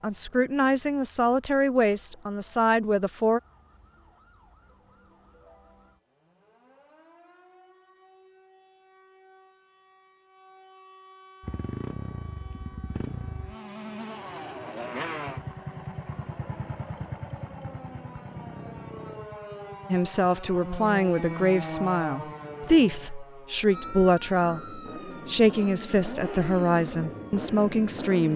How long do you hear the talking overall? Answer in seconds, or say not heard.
12 s.